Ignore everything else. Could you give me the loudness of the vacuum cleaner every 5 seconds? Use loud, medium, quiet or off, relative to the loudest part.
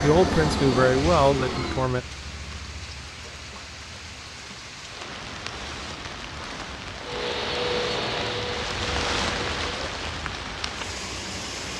loud, loud, off.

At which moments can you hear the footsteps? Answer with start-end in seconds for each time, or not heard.
not heard.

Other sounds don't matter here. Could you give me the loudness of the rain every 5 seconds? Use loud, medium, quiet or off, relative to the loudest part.
medium, loud, loud.